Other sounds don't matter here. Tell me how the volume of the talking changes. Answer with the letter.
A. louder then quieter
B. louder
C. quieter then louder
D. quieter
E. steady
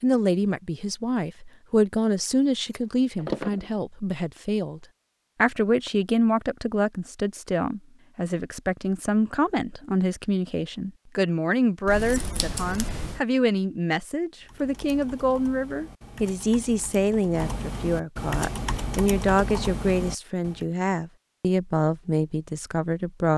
E.